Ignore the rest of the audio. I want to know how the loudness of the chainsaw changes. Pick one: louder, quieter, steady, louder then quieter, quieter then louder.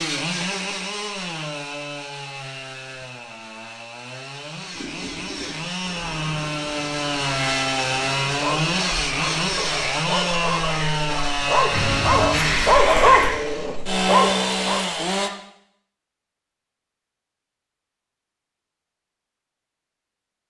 louder.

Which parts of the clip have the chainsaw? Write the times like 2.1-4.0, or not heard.
0.0-15.3.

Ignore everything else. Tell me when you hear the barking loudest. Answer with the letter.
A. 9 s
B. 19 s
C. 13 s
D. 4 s
C.